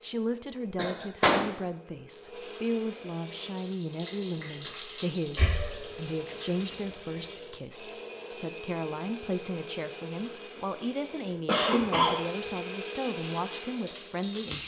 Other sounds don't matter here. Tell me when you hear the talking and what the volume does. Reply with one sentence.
The talking can be heard from 0.0 to 14.6 s, at a steady volume.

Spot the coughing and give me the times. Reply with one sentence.
You can hear the coughing from 0.8 to 1.4 s, from 5.3 to 5.8 s and from 11.4 to 12.2 s.